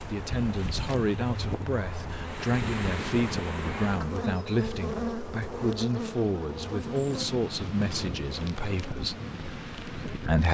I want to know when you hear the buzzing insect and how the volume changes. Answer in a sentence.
You can hear the buzzing insect from 0.0 to 10.2 s, getting louder then quieter.